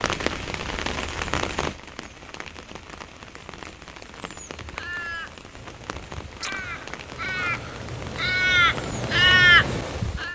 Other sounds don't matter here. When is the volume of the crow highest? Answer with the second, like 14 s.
9 s.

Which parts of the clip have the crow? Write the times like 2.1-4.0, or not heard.
4.5-10.2.